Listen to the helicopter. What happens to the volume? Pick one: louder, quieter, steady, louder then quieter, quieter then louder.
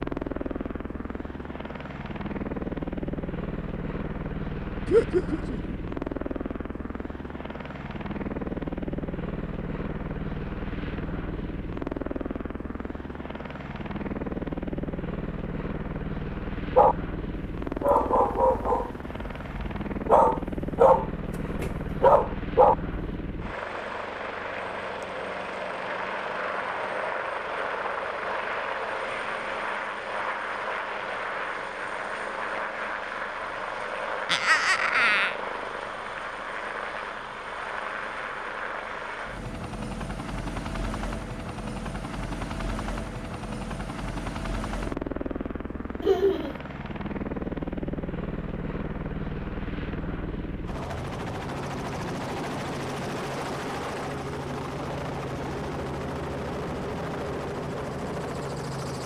steady.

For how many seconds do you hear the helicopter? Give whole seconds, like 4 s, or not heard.
59 s.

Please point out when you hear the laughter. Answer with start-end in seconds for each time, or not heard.
4.8-5.8, 34.2-35.4, 46.0-46.5.